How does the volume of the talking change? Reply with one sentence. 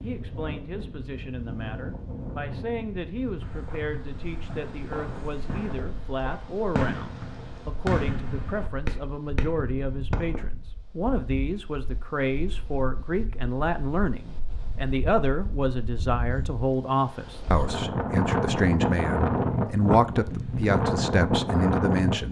The volume of the talking goes up.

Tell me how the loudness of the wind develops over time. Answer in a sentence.
The loudness of the wind goes down, then up.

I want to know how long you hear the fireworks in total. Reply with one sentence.
The fireworks can be heard for 7 seconds in total.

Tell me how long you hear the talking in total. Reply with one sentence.
You can hear the talking for 22 seconds altogether.